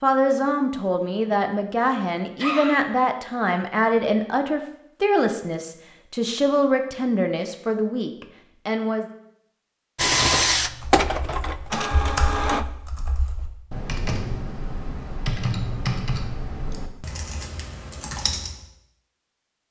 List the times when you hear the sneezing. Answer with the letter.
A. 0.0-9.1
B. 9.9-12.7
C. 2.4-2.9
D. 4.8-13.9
C.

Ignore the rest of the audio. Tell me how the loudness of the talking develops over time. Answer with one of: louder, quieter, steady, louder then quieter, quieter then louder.
steady.